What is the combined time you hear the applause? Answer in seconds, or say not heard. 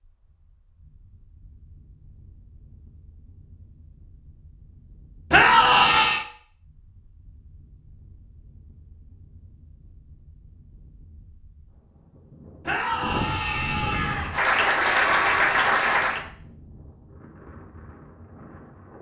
2 s.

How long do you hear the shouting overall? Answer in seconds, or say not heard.
3 s.